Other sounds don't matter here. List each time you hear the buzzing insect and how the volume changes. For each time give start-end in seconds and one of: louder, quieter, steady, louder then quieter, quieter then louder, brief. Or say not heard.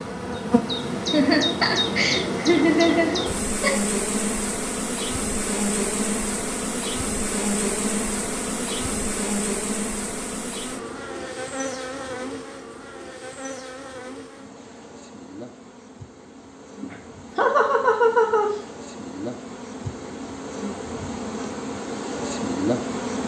0.0-23.2 quieter then louder.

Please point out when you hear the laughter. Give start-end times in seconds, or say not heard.
1.1-3.8, 16.8-18.6.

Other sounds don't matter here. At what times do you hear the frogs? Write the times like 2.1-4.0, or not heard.
not heard.